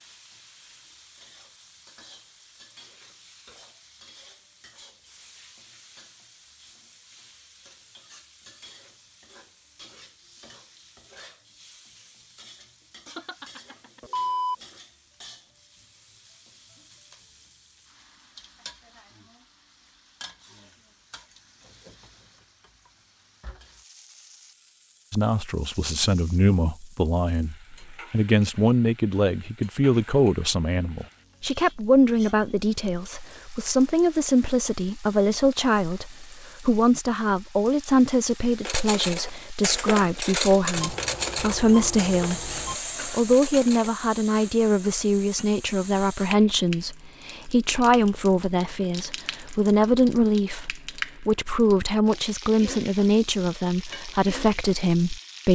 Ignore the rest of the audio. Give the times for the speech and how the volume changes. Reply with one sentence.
You can hear the speech from 25.1 to 55.5 s, at a steady volume.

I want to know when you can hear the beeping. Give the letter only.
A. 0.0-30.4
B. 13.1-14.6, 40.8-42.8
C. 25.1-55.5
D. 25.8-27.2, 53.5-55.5
B.